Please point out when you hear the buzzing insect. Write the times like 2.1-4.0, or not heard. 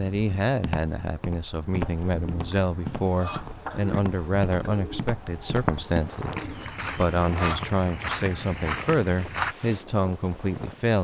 not heard.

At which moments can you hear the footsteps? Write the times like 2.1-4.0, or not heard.
0.5-9.6.